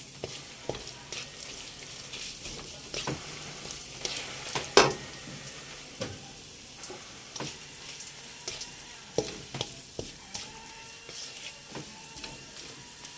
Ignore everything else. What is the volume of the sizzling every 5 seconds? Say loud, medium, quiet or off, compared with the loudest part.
loud, medium, quiet.